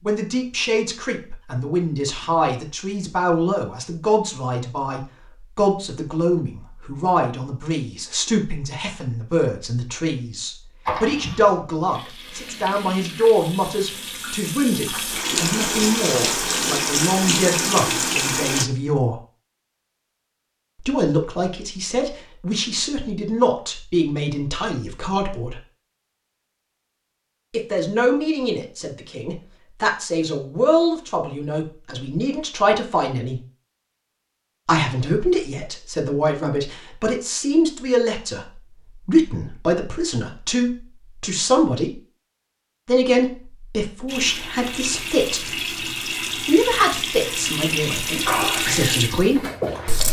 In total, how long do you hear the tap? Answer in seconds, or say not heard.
14 s.